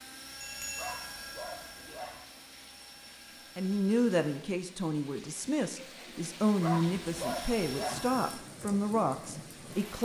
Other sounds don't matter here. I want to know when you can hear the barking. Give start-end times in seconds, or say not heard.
0.8-2.2, 6.6-8.1.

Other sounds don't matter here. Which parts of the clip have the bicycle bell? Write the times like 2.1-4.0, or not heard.
0.4-1.0.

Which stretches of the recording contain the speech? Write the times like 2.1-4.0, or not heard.
3.5-10.0.